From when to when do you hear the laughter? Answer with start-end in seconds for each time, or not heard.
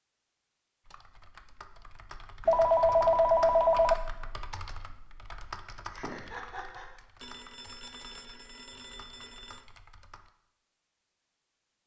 5.9-6.9.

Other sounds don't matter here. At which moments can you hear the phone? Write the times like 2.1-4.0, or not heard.
2.5-4.0, 7.2-9.7.